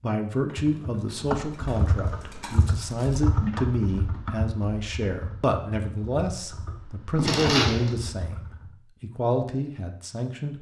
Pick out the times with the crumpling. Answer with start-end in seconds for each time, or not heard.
0.5-3.2, 7.2-7.9.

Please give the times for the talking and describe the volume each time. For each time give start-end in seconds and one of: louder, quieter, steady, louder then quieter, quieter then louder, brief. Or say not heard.
0.0-10.5 steady.